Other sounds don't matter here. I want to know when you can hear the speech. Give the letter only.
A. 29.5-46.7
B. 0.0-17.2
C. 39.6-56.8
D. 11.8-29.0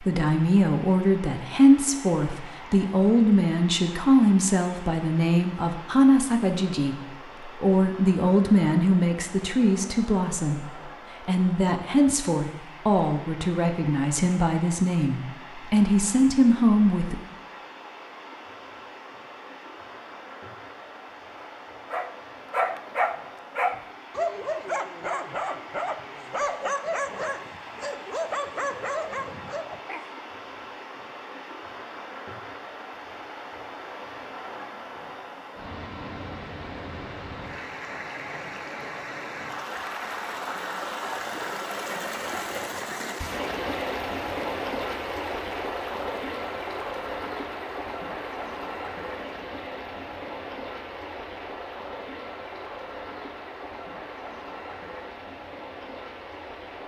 B.